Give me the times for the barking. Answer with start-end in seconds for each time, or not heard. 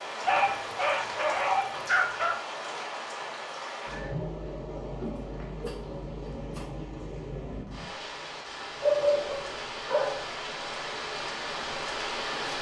0.2-2.4, 5.6-6.8, 8.8-10.3.